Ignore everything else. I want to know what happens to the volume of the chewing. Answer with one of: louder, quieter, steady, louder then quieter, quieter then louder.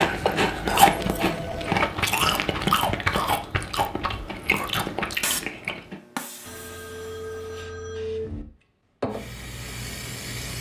quieter.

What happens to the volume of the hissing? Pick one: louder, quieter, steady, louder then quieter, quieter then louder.
quieter then louder.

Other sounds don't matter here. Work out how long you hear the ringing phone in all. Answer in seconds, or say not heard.
3 s.